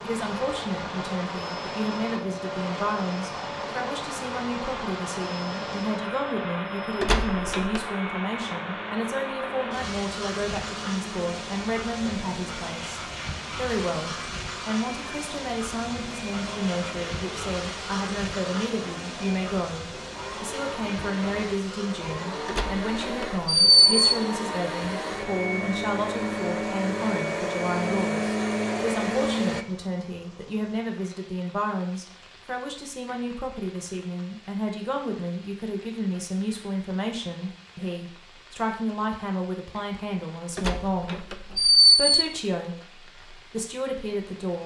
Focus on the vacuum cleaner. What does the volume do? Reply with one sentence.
The volume of the vacuum cleaner goes up.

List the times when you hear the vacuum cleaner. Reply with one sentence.
The vacuum cleaner can be heard from 0.1 to 29.6 s.